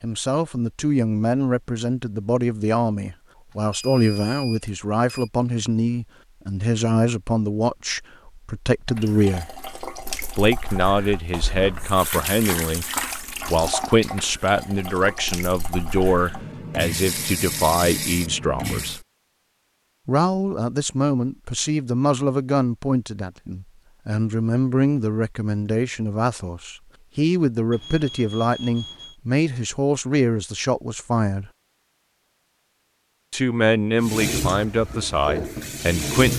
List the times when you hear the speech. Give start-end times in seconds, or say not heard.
0.0-9.5, 10.3-19.0, 20.1-31.5, 33.3-36.3.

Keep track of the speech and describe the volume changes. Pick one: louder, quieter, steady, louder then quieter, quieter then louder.
steady.